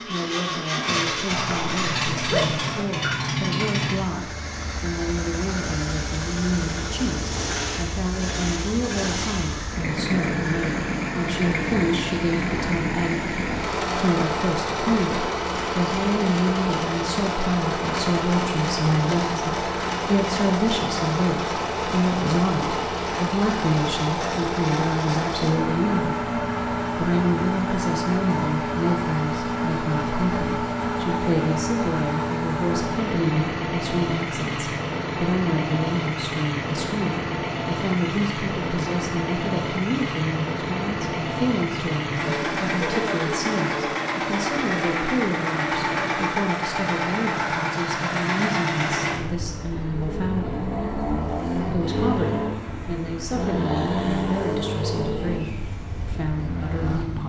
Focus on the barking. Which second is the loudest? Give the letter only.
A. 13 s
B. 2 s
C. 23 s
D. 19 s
B.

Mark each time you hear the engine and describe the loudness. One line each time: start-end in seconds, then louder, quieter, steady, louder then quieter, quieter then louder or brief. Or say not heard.
0.0-57.2 steady.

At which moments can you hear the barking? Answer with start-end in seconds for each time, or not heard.
1.2-2.9.